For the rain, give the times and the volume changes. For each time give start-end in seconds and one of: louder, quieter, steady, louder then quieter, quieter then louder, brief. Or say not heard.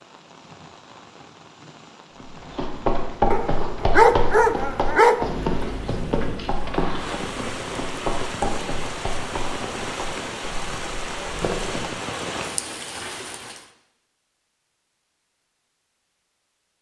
0.0-13.7 louder.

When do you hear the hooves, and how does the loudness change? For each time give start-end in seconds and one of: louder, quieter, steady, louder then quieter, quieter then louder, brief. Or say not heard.
2.2-11.9 quieter.